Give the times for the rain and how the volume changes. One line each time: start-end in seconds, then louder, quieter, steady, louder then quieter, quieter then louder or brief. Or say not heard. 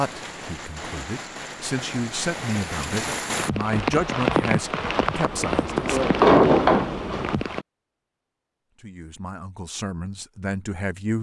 0.0-7.7 louder.